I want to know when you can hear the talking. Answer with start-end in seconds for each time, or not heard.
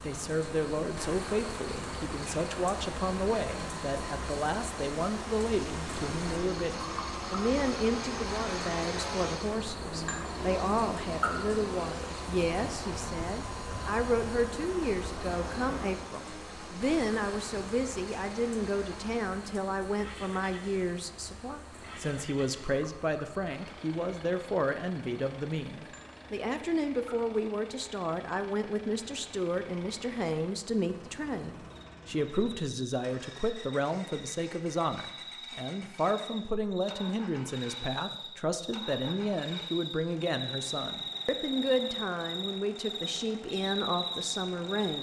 0.0-44.9.